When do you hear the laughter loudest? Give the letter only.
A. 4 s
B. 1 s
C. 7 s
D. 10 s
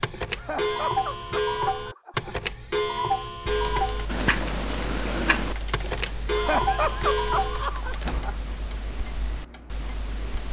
C.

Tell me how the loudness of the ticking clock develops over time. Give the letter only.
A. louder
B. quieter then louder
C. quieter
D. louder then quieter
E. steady
C.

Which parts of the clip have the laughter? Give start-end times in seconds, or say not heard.
0.3-2.5, 6.3-8.3.